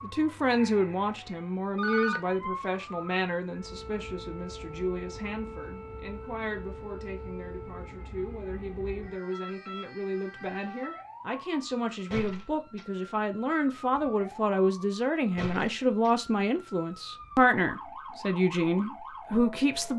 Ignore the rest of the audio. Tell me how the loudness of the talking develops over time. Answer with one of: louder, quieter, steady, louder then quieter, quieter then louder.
quieter then louder.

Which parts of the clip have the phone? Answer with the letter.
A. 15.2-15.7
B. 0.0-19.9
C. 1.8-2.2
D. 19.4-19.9
C.